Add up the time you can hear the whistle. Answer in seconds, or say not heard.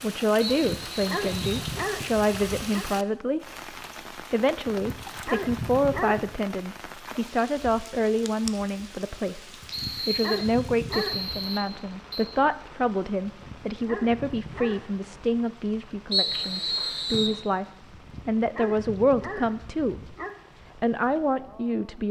5 s.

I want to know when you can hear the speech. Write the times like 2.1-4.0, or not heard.
0.0-3.4, 4.3-17.6, 18.2-20.1, 20.8-22.0.